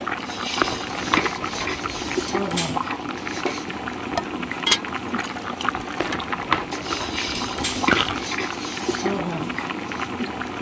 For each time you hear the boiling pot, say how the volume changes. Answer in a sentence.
The boiling pot can be heard from 0.0 to 10.5 s, at a steady volume.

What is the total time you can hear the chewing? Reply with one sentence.
The chewing can be heard for 4 seconds in total.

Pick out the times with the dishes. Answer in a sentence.
You can hear the dishes from 0.2 to 10.1 s.